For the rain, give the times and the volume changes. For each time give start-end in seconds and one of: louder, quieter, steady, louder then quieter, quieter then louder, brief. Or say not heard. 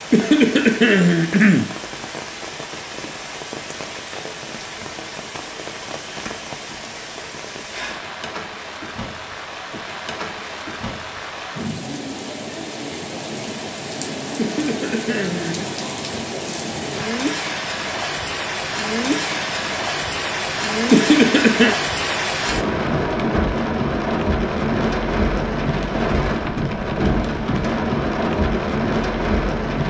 0.0-29.8 louder.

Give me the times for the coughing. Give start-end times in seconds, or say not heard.
0.1-1.7, 14.3-15.7, 20.9-21.8.